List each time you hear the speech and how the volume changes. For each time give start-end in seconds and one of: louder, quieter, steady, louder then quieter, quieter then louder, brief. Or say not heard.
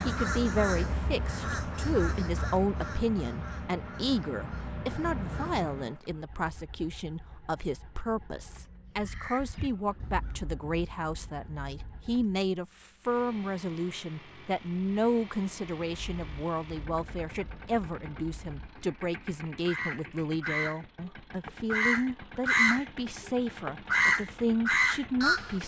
0.0-25.6 steady.